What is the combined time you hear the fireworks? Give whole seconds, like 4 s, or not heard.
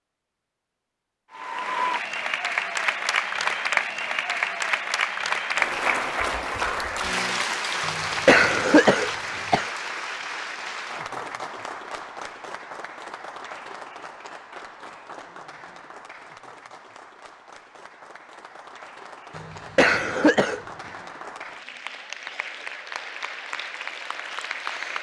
not heard.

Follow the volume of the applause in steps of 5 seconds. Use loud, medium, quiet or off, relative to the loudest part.
loud, loud, medium, quiet, medium.